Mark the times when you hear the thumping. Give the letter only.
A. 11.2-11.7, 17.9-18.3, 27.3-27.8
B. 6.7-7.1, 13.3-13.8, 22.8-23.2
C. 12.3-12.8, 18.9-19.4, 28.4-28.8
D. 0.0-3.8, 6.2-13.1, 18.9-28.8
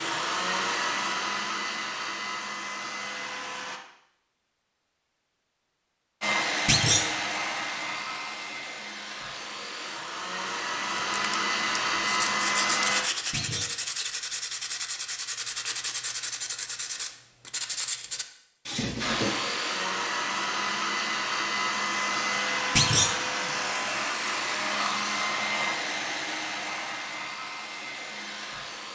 B.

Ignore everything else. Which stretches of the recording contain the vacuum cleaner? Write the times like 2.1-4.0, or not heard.
0.0-3.8, 6.2-13.1, 18.9-28.8.